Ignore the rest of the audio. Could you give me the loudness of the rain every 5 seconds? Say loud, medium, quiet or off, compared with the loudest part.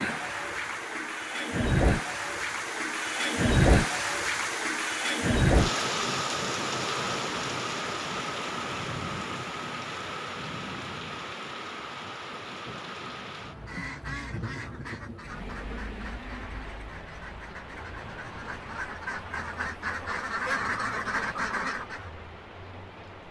loud, loud, medium, quiet, quiet.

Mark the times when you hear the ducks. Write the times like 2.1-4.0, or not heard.
13.4-22.1.